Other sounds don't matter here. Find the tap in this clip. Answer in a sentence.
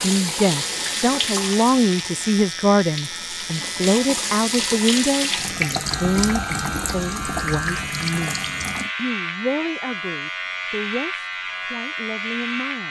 You can hear the tap from 0.0 to 8.9 s.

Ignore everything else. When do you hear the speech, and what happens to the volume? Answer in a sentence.
The speech can be heard from 0.0 to 12.8 s, getting quieter.